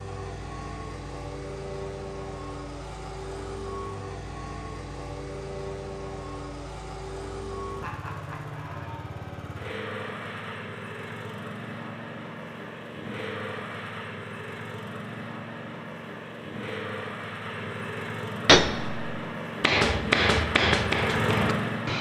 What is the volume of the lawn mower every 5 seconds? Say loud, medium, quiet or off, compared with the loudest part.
medium, medium, medium, medium, loud.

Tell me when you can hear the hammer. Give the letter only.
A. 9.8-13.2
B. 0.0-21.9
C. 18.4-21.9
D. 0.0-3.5
C.